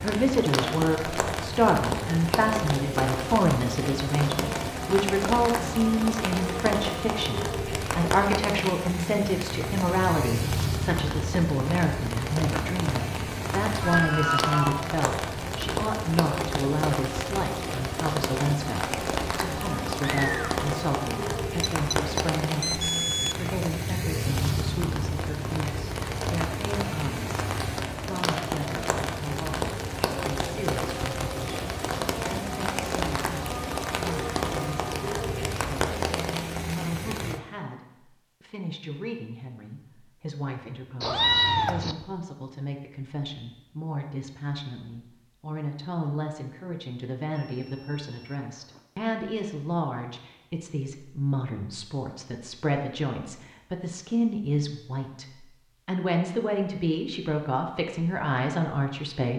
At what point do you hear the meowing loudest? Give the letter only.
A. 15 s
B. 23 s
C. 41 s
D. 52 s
C.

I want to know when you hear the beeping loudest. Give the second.
23 s.